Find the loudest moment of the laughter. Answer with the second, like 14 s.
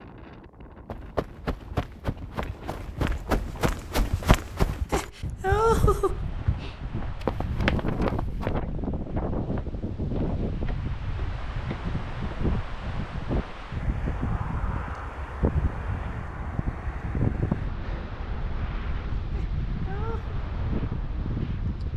6 s.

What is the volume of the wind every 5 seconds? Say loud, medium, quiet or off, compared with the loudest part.
quiet, loud, loud, loud, loud.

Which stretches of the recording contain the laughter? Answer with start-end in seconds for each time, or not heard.
4.9-6.2, 19.3-20.4.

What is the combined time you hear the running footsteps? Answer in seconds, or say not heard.
8 s.